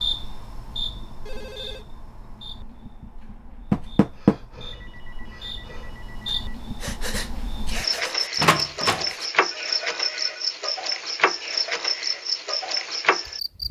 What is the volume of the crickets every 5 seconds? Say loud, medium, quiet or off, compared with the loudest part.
medium, loud, loud.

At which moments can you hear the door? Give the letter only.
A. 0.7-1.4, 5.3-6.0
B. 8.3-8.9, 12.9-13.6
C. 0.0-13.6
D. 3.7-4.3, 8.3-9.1
D.